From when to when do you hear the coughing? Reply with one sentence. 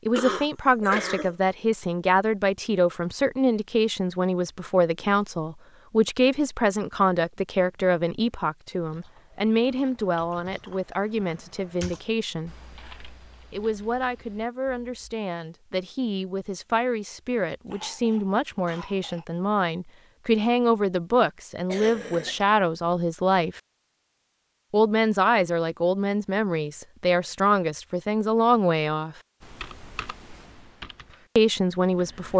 The coughing can be heard from 0.1 to 1.4 s, from 17.6 to 19.2 s and from 21.7 to 22.4 s.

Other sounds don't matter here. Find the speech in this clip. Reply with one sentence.
You can hear the speech from 0.1 to 12.6 s, from 13.5 to 23.6 s, from 24.7 to 29.1 s and from 31.4 to 32.3 s.